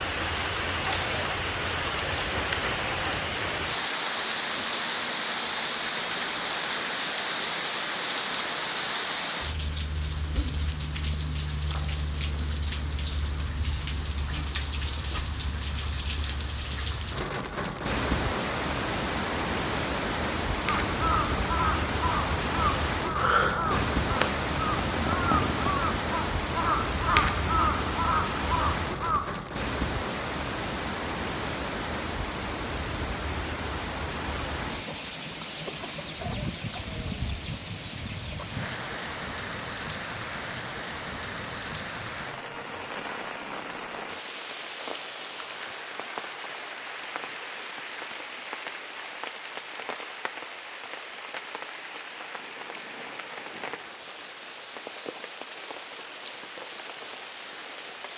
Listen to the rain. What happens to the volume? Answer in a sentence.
The volume of the rain goes down.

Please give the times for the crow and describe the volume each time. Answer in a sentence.
You can hear the crow from 20.6 to 29.2 s, at a steady volume.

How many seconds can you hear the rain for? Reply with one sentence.
You can hear the rain for 58 seconds altogether.